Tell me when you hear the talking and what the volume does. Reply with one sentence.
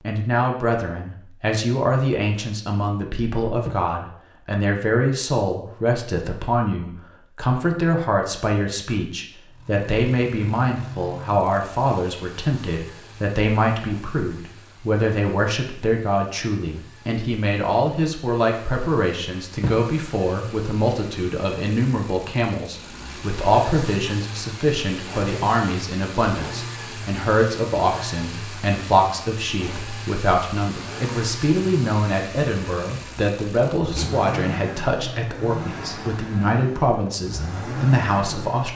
The talking can be heard from 0.0 to 38.7 s, at a steady volume.